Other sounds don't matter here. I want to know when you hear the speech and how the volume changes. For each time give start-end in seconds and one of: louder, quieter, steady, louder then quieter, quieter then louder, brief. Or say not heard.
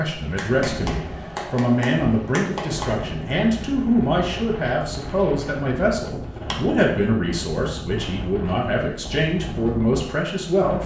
0.0-10.8 steady.